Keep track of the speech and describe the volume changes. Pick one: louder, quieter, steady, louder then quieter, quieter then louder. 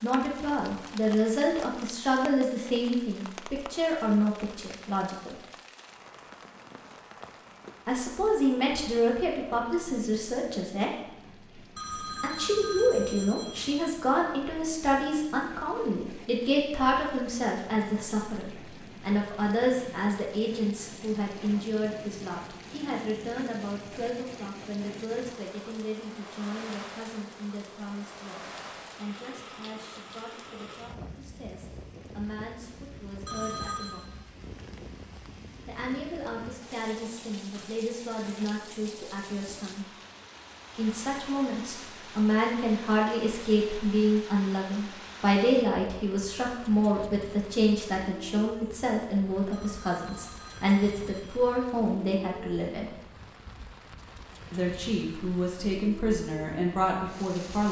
quieter then louder.